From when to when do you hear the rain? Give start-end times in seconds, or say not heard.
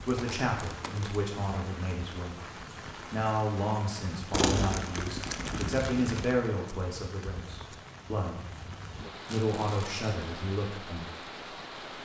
0.0-12.0.